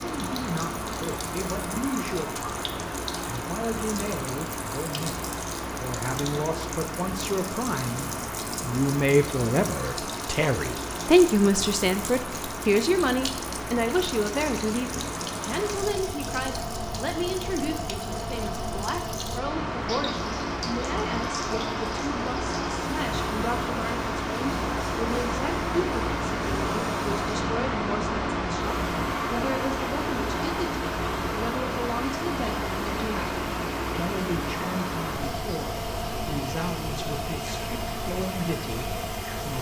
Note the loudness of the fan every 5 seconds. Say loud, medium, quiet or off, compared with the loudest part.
medium, medium, medium, medium, loud, loud, loud, medium.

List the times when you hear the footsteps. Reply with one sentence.
You can't hear the footsteps here.